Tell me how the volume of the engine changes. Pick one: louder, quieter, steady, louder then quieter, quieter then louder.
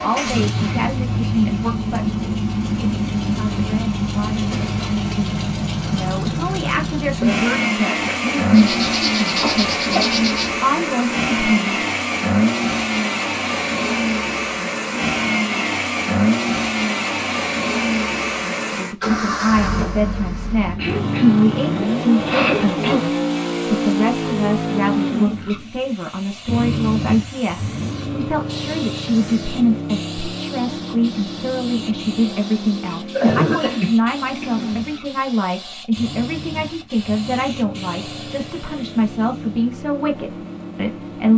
quieter.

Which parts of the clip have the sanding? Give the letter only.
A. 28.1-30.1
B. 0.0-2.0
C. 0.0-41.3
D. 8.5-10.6
D.